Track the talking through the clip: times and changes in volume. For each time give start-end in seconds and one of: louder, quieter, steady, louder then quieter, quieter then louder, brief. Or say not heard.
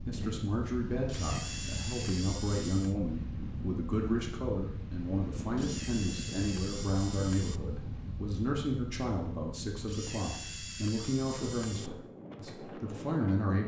0.1-13.6 steady.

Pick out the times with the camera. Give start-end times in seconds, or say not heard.
1.1-3.0, 5.5-7.6, 9.8-11.9.